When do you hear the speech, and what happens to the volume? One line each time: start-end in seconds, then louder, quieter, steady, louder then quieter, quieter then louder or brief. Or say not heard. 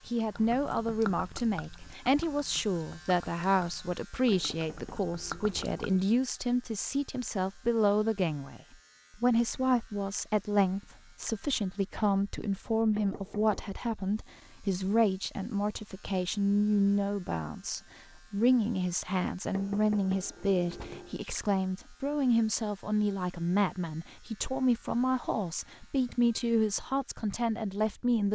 0.1-8.6 steady
9.2-28.2 steady.